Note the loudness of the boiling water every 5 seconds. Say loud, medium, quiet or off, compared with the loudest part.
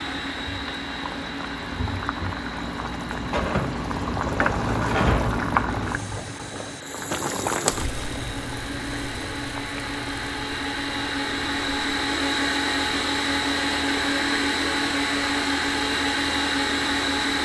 loud, loud, quiet, quiet.